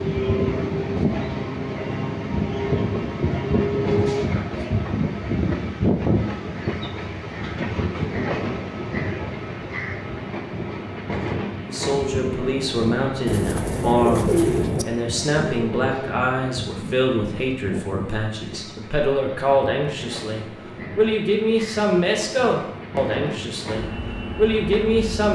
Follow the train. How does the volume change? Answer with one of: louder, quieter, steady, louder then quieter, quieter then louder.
quieter.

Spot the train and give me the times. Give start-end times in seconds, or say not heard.
0.0-25.2.